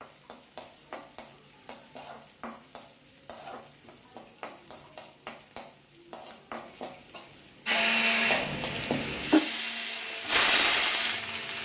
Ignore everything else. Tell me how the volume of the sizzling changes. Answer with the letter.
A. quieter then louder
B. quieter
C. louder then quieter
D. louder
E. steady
D.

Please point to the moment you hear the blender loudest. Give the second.
8 s.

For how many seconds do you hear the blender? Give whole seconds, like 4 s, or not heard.
4 s.